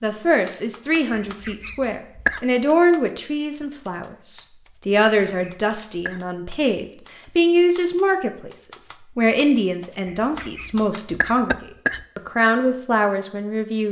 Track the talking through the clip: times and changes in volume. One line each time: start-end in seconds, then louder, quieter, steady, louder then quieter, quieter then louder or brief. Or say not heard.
0.0-13.8 steady.